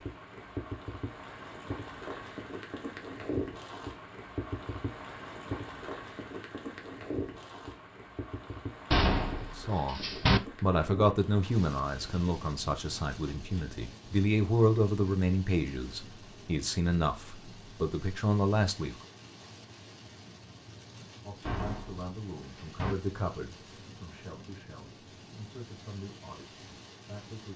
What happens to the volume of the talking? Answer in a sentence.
The volume of the talking goes down.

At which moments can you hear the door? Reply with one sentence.
The door can be heard from 8.9 to 10.4 s and from 21.4 to 22.9 s.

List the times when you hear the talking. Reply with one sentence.
The talking can be heard from 9.6 to 18.9 s and from 21.2 to 27.5 s.